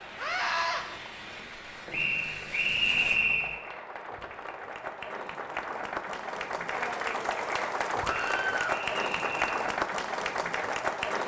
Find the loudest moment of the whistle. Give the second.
3 s.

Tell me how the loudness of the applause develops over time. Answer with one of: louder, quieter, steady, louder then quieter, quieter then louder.
louder.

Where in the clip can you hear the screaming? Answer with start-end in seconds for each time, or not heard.
0.1-0.8, 8.0-8.8.